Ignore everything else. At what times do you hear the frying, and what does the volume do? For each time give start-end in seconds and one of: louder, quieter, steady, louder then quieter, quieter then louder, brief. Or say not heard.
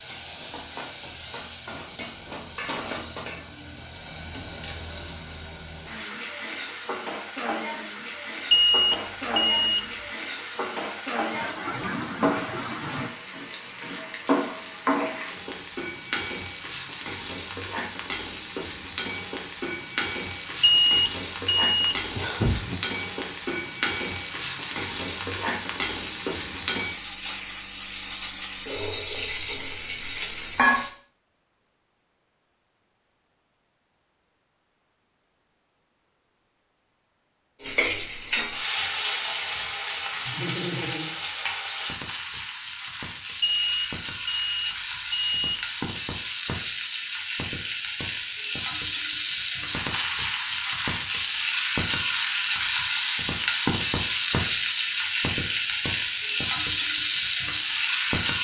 0.0-30.9 louder
37.6-58.3 louder.